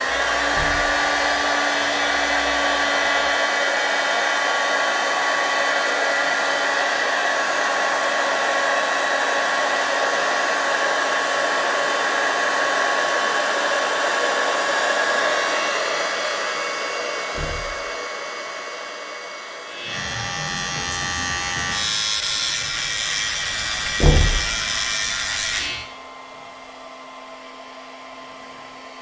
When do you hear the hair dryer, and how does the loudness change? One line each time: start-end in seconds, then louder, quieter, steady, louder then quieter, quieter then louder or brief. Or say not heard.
0.0-28.9 quieter.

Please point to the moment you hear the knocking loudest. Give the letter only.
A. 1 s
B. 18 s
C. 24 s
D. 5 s
C.